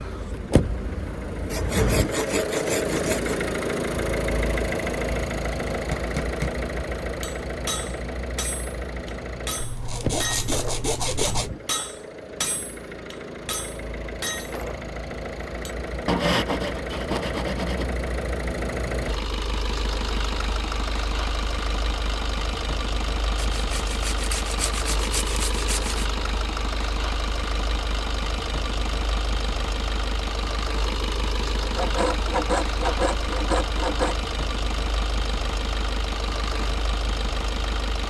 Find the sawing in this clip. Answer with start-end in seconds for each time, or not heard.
1.4-3.5, 9.6-11.5, 16.1-17.9, 23.4-26.1, 31.7-34.1.